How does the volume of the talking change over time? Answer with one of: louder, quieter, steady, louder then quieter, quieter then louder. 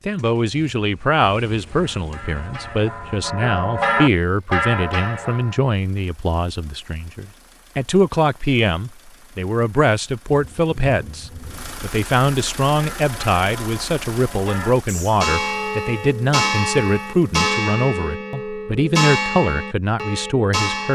steady.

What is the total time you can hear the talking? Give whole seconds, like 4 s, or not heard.
21 s.